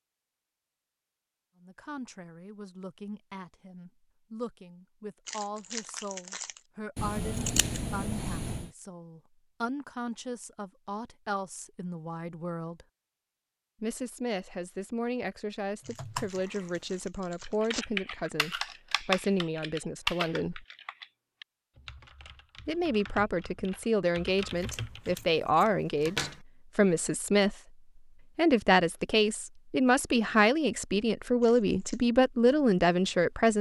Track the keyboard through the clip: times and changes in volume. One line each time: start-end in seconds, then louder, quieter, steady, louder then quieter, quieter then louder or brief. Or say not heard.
15.8-16.6 brief
17.4-25.2 quieter then louder.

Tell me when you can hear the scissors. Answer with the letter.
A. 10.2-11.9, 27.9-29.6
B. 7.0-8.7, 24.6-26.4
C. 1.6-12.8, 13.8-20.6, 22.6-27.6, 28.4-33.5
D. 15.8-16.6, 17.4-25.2
B.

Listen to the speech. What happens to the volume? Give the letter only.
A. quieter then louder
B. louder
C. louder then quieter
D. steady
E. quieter
B.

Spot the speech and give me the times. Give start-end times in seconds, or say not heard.
1.6-12.8, 13.8-20.6, 22.6-27.6, 28.4-33.5.